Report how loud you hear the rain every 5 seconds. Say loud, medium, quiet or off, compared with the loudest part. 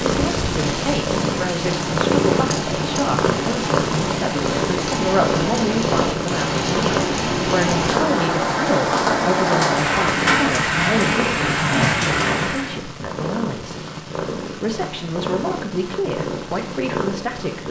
medium, loud, loud, off.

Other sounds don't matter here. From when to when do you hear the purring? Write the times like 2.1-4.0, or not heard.
0.0-17.6.